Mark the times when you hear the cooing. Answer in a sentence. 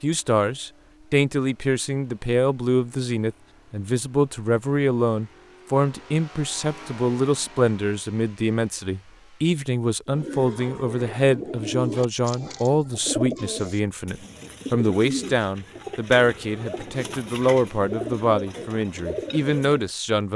You can hear the cooing from 10.1 to 19.9 s.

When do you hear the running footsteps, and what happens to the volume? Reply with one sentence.
You can't hear the running footsteps here.